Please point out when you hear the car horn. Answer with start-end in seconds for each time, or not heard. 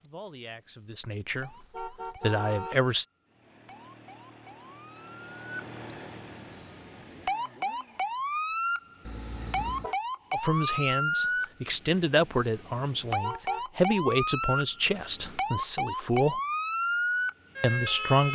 1.4-2.8, 9.1-9.9, 13.1-13.7.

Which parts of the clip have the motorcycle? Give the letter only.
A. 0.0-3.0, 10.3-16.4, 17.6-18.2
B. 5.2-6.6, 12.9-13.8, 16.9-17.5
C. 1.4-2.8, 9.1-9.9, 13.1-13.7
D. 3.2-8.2
D.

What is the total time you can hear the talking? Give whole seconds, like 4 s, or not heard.
10 s.